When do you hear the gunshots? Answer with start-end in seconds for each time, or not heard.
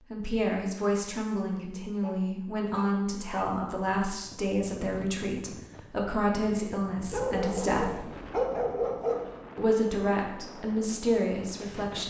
not heard.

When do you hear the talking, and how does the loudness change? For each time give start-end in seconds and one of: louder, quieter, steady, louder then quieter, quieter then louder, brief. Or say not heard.
0.1-8.1 steady
9.6-12.0 brief.